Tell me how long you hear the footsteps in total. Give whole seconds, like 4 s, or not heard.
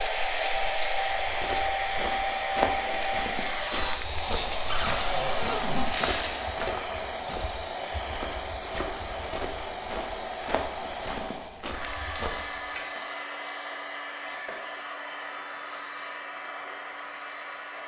12 s.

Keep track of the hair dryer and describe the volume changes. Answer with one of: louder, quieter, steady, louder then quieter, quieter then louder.
quieter.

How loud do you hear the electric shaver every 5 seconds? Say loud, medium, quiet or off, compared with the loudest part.
loud, loud, off, off.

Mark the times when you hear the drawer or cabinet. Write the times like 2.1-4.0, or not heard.
4.7-5.8.